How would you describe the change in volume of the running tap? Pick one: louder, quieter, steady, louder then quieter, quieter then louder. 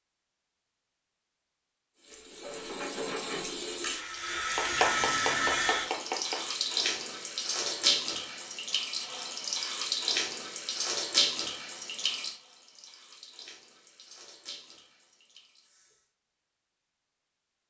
quieter.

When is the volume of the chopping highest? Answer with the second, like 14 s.
5 s.